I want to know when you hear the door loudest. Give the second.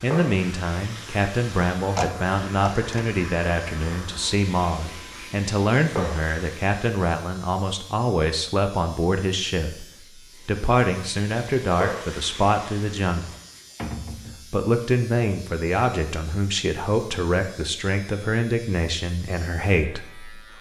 2 s.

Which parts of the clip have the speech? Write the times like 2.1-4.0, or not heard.
0.0-9.8, 10.4-13.3, 14.5-20.5.